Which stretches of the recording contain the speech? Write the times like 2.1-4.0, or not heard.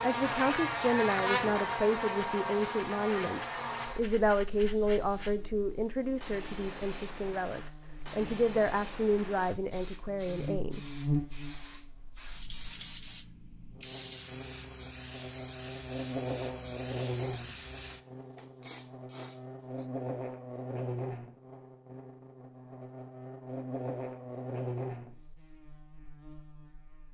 0.0-10.8.